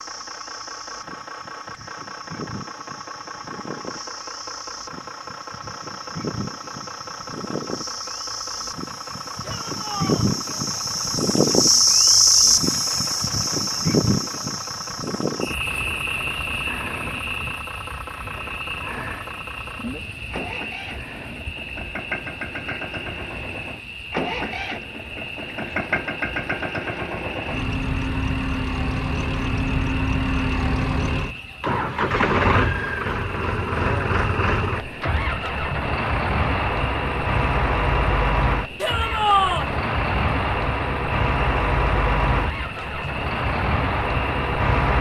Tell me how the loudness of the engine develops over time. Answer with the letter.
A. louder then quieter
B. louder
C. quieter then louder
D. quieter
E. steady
B.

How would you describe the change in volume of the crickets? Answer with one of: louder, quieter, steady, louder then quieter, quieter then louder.
louder then quieter.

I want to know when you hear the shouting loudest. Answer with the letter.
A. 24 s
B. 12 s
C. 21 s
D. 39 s
D.